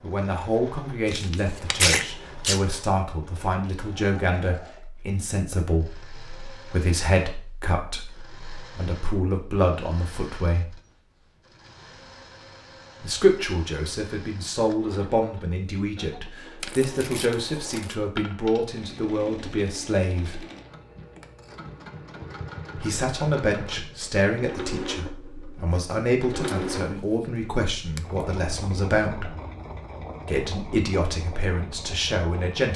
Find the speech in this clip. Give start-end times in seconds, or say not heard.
0.0-10.8, 13.0-20.4, 22.8-29.3, 30.2-32.7.